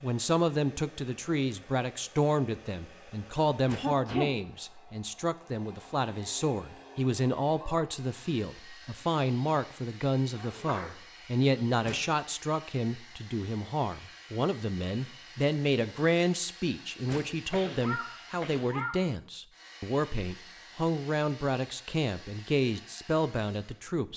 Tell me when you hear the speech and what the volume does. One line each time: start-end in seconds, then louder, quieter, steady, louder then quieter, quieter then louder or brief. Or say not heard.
0.0-24.1 steady.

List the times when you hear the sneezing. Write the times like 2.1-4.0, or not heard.
3.8-4.3, 10.3-11.0, 17.5-19.1.